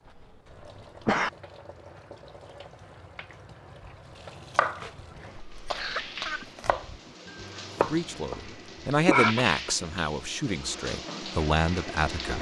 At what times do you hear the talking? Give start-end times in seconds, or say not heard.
7.8-12.3.